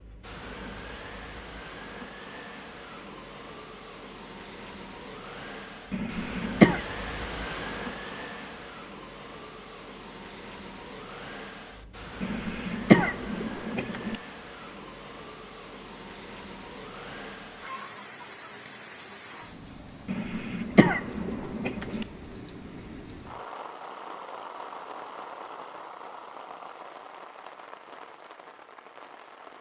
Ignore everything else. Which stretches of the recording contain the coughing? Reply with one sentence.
The coughing can be heard from 5.9 to 6.8 s, from 12.2 to 14.2 s and from 20.1 to 22.1 s.